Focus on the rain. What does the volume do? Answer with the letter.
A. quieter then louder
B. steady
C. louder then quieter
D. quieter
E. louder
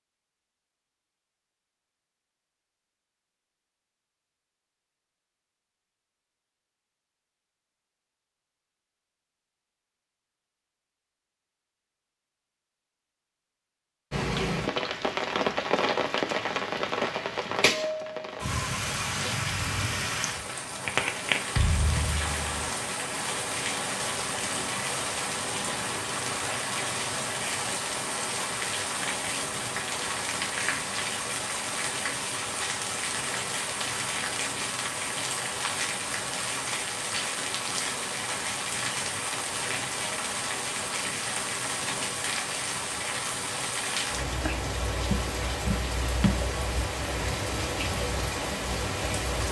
B.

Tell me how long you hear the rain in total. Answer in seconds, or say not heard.
35 s.